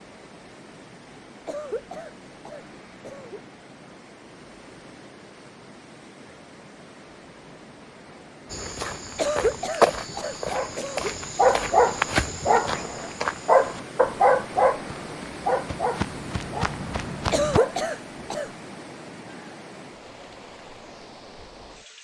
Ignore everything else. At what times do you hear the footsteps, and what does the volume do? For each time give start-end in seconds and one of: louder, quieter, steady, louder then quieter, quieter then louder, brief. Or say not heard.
8.5-17.6 quieter then louder.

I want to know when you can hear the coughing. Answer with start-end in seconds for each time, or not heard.
1.4-3.4, 9.2-11.1, 17.3-18.5.